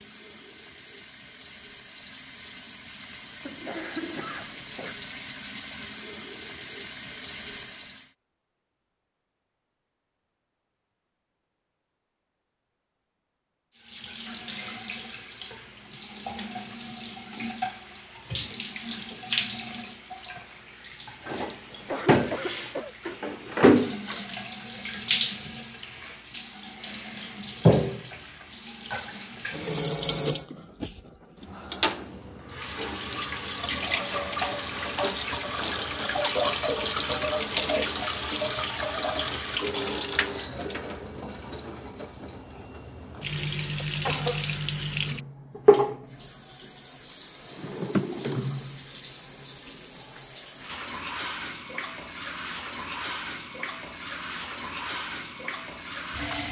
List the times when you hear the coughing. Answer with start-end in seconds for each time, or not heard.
3.5-5.0, 21.6-22.9, 43.8-44.5.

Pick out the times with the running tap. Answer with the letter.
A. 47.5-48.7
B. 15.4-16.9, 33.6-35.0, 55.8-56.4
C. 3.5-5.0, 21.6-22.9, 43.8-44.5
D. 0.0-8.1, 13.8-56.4
D.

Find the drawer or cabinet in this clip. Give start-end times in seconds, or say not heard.
47.5-48.7.